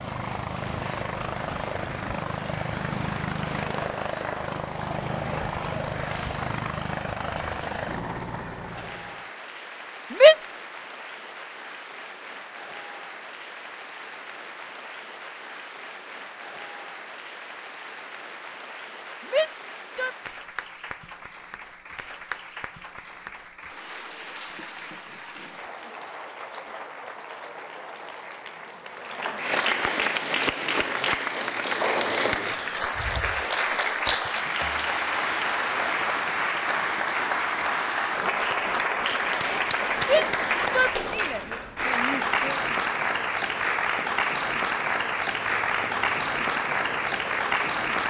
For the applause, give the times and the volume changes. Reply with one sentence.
You can hear the applause from 0.0 to 48.0 s, getting louder.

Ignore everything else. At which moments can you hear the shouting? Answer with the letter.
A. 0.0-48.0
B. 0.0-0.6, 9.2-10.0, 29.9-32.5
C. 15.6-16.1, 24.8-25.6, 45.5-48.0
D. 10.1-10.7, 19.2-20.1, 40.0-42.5
D.